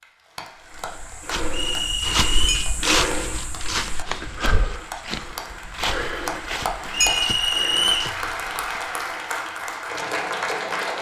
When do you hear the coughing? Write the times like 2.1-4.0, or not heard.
not heard.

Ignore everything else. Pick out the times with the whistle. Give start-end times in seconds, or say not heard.
1.5-2.6, 6.9-8.2.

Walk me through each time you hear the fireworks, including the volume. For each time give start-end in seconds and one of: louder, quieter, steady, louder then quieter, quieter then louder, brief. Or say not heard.
not heard.